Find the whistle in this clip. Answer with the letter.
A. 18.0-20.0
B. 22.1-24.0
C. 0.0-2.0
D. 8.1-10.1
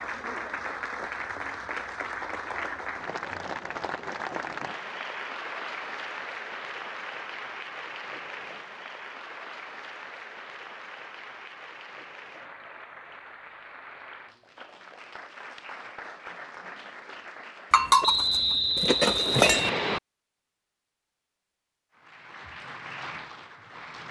A.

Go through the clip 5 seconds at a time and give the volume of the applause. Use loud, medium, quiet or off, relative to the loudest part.
loud, loud, medium, medium, medium.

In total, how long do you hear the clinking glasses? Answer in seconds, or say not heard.
2 s.